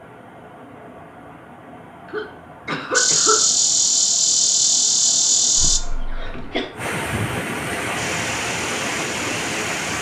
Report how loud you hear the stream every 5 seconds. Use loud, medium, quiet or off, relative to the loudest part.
quiet, loud.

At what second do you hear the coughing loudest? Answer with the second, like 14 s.
3 s.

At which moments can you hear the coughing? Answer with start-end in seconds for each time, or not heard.
2.0-3.5, 5.5-6.7.